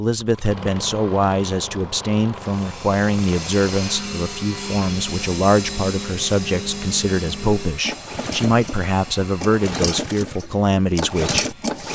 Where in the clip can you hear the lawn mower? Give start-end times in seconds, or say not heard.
0.0-11.8.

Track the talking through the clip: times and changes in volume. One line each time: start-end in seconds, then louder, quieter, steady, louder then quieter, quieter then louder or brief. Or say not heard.
0.0-11.6 steady.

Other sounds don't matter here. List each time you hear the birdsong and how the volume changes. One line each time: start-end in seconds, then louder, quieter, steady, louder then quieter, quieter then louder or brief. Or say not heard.
not heard.